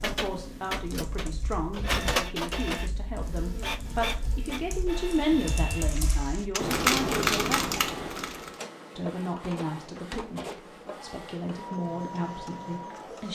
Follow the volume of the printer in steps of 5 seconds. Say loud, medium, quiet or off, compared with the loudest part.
loud, medium, medium.